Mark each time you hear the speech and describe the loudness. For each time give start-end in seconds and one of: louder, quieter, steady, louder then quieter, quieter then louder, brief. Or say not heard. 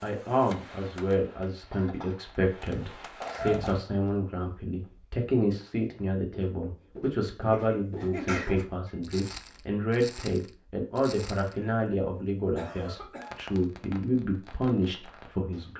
0.0-15.7 steady.